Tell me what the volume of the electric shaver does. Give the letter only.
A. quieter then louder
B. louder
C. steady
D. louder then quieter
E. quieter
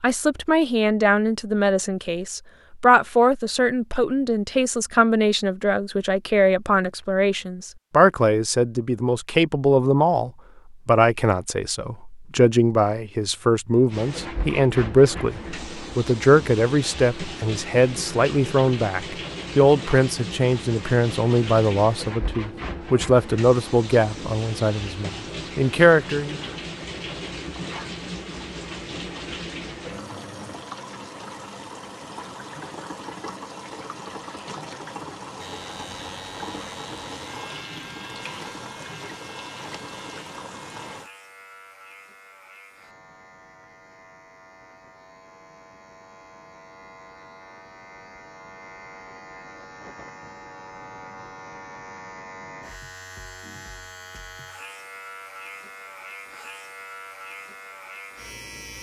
A.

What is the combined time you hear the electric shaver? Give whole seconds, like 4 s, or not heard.
23 s.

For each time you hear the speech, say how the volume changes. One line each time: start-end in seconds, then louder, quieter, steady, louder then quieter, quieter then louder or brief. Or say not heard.
0.0-26.4 steady.